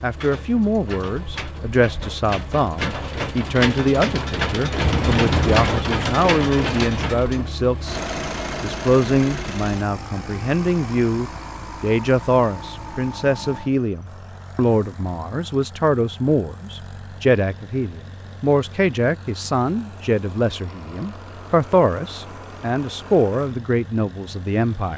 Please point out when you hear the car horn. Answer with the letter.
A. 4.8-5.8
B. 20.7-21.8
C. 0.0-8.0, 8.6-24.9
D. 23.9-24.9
A.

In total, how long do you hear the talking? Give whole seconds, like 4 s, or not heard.
24 s.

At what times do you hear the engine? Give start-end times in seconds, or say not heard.
0.0-24.9.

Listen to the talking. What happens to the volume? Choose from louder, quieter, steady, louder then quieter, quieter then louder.
steady.